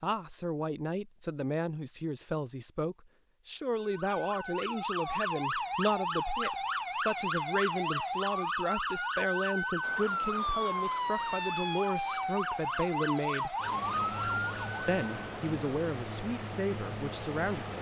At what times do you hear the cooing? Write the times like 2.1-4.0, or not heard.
not heard.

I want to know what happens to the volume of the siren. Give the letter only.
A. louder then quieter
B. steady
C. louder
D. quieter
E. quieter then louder
B.